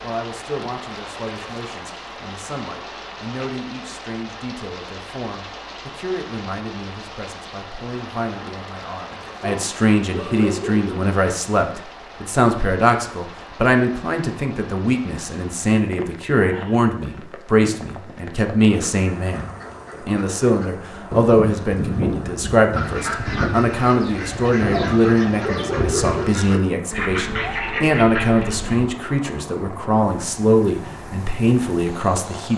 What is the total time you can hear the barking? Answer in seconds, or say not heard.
3 s.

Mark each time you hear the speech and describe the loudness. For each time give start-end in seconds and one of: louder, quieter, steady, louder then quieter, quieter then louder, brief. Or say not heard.
0.0-32.5 louder.